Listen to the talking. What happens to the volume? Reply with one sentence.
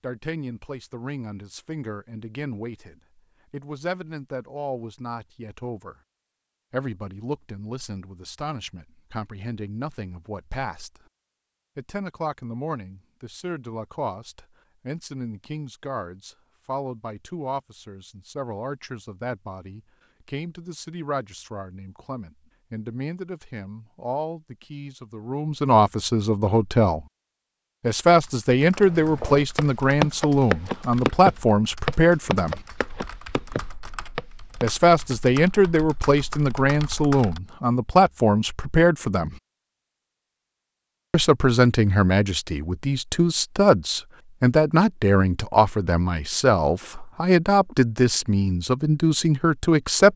The loudness of the talking goes up.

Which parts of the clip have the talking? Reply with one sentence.
The talking can be heard from 0.0 to 6.0 s, from 6.7 to 11.0 s, from 11.8 to 27.1 s, from 27.8 to 32.6 s, from 34.6 to 39.4 s and from 41.1 to 50.1 s.